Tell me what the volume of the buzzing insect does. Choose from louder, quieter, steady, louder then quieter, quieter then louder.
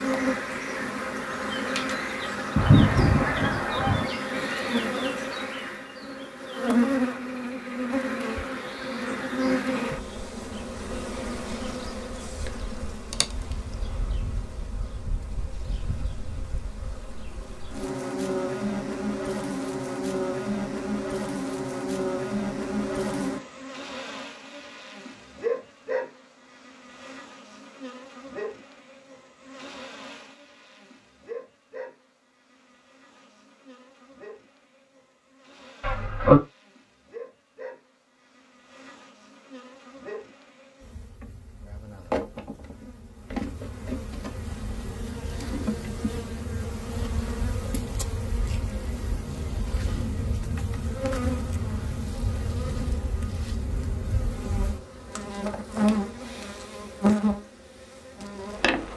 quieter then louder.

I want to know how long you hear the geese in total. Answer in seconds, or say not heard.
2 s.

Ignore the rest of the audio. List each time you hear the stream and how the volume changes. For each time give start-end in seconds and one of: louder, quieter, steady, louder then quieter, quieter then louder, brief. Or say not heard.
not heard.